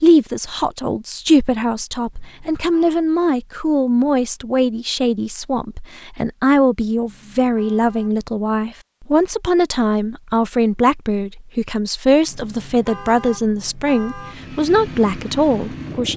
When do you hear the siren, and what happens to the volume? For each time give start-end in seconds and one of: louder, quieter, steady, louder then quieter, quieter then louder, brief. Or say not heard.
not heard.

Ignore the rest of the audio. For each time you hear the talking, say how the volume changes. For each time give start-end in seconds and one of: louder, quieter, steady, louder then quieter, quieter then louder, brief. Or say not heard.
0.0-16.1 steady.